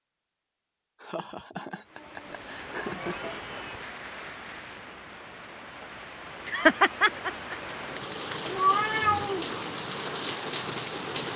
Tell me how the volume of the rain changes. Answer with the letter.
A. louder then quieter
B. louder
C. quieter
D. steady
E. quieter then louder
B.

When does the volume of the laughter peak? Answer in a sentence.
The loudest moment of the laughter is at 7 seconds.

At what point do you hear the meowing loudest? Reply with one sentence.
The loudest moment of the meowing is at 9 seconds.